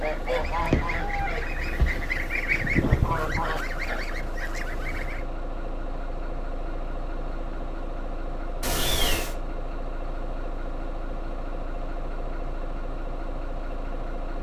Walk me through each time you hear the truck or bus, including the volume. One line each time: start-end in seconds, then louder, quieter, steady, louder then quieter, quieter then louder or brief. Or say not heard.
0.0-14.3 steady.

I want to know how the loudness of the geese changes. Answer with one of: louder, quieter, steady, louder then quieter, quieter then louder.
louder then quieter.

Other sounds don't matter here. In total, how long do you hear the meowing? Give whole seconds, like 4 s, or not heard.
2 s.